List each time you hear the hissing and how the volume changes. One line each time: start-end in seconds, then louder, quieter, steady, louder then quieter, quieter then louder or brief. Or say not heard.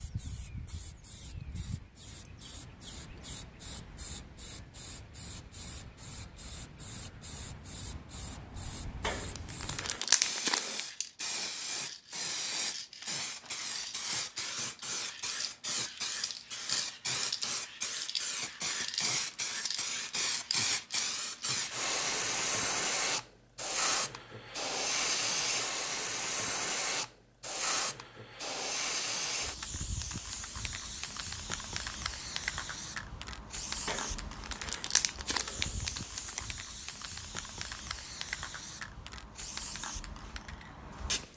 0.0-41.3 louder then quieter.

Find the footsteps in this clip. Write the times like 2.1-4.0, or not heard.
not heard.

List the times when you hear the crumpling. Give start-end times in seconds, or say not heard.
9.0-10.8, 33.9-36.5.